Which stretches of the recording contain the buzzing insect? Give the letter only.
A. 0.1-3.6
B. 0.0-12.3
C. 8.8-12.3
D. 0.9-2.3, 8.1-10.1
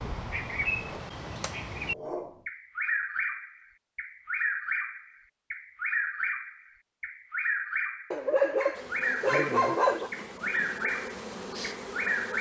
C.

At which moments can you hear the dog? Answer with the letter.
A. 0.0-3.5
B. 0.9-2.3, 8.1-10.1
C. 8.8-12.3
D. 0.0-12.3
B.